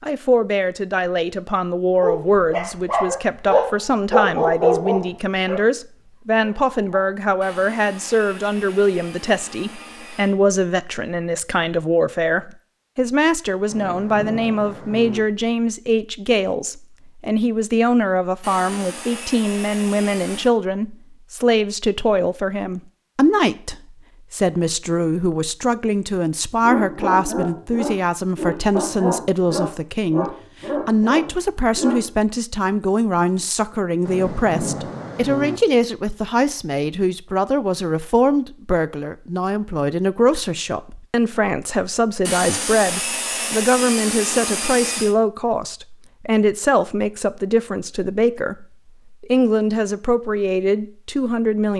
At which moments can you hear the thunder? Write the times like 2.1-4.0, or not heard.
13.7-15.2, 34.0-35.6.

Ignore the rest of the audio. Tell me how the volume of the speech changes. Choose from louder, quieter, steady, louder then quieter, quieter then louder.
steady.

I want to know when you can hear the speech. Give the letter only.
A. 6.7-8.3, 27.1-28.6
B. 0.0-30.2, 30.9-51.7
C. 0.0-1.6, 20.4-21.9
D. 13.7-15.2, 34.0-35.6
B.